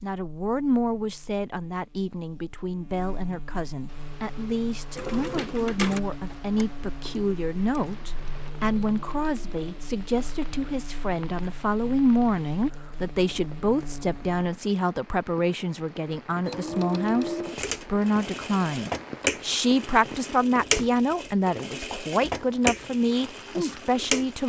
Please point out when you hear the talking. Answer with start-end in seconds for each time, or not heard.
0.0-24.4.